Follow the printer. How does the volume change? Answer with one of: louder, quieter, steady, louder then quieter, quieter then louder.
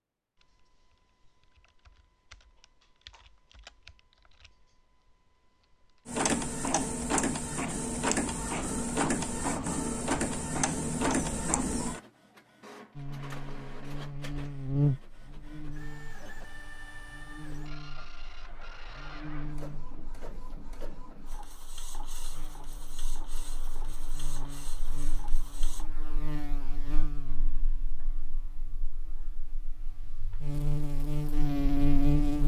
quieter.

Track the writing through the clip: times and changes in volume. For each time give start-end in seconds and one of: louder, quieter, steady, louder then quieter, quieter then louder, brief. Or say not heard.
not heard.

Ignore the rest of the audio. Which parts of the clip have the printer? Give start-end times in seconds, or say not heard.
6.0-25.9.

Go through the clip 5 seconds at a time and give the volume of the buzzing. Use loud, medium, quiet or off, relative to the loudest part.
off, off, loud, quiet, quiet, quiet, loud.